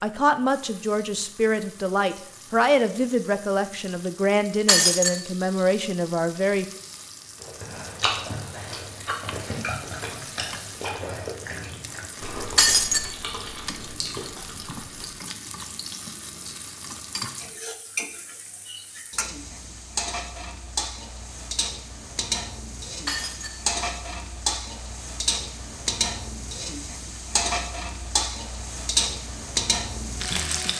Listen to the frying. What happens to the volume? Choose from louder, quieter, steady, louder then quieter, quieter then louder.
louder.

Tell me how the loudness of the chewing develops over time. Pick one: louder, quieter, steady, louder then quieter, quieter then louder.
quieter.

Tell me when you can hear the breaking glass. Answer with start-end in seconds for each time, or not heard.
4.7-5.2, 12.6-13.1, 23.1-23.6.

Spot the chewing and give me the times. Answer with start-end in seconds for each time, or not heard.
7.4-15.1.